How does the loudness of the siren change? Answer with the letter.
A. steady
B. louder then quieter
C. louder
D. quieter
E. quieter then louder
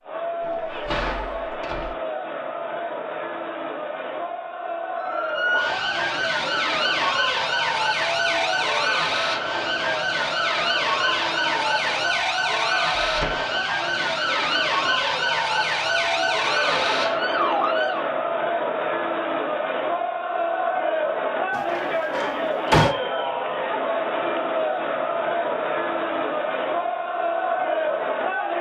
A.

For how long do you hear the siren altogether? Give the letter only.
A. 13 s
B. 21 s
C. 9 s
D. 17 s
A.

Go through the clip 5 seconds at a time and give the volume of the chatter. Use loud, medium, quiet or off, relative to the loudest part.
medium, medium, medium, loud, loud, loud.